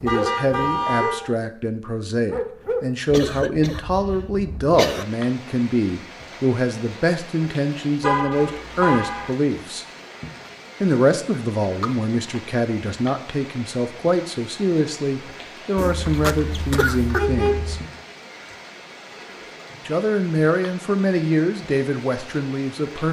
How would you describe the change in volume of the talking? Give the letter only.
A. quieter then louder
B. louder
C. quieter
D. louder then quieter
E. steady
E.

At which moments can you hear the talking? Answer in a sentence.
You can hear the talking from 0.0 to 9.8 s, from 10.8 to 17.8 s and from 19.9 to 23.0 s.